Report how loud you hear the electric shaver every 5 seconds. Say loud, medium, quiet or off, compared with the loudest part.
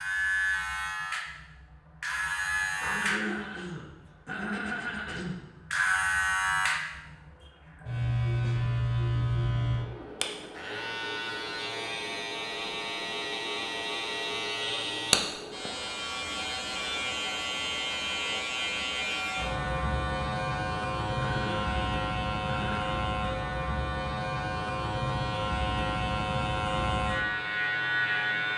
loud, loud, medium, loud, loud, loud.